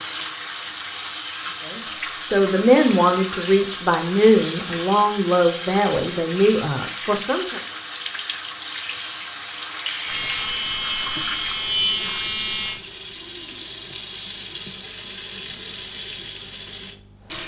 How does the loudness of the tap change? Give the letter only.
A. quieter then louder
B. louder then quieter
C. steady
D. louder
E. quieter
C.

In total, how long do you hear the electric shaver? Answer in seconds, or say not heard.
3 s.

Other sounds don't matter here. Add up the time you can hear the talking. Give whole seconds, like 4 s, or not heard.
6 s.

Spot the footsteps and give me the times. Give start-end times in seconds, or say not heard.
not heard.